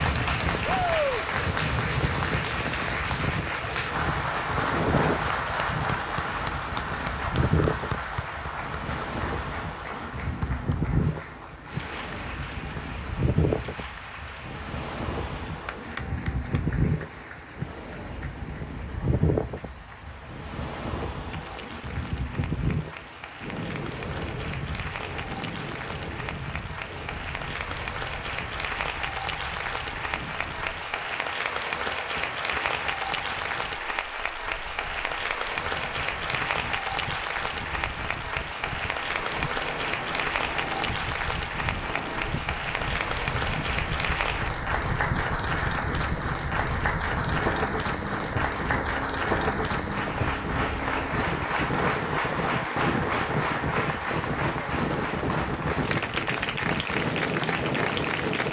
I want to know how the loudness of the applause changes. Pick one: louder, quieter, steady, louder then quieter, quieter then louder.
quieter then louder.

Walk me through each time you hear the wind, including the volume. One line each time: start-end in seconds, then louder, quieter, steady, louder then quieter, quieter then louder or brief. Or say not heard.
0.0-58.4 quieter then louder.